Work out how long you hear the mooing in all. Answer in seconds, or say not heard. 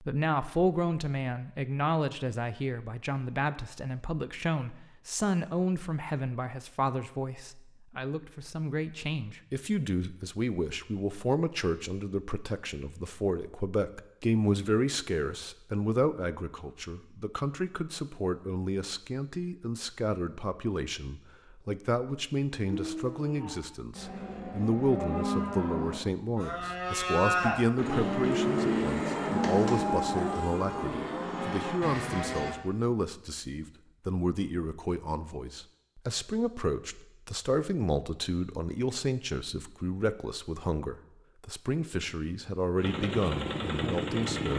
10 s.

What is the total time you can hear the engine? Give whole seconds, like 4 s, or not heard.
2 s.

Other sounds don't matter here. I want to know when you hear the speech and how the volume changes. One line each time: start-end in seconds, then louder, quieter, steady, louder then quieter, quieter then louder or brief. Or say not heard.
0.0-44.5 steady.